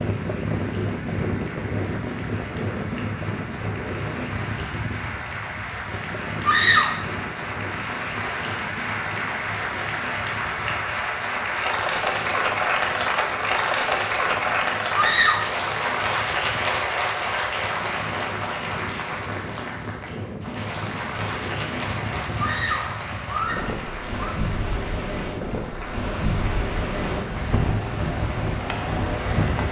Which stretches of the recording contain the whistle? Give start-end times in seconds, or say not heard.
not heard.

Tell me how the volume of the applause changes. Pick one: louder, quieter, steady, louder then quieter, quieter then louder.
louder then quieter.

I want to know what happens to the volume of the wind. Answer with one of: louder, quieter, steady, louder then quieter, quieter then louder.
quieter then louder.